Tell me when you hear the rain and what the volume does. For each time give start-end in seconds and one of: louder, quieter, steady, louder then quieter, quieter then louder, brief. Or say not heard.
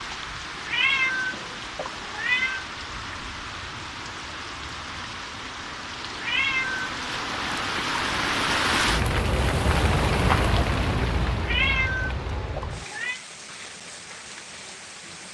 0.0-15.3 louder then quieter.